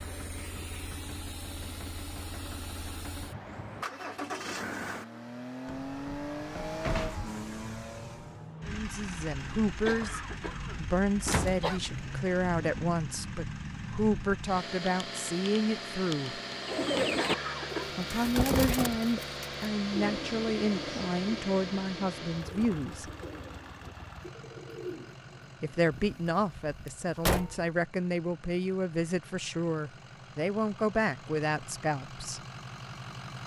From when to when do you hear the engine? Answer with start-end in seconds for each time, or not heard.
0.0-33.4.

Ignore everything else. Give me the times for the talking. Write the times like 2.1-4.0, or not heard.
8.7-16.4, 17.9-23.1, 25.6-32.4.